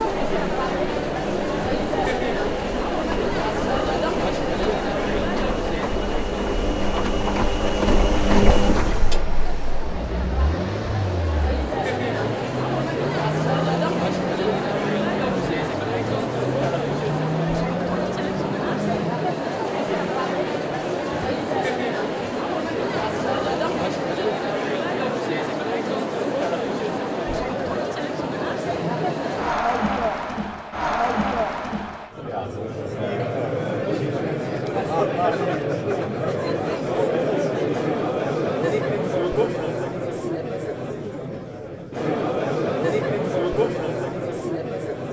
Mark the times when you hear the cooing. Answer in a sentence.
The cooing can't be heard in this clip.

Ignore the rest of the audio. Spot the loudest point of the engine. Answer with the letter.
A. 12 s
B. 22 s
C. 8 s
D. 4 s
C.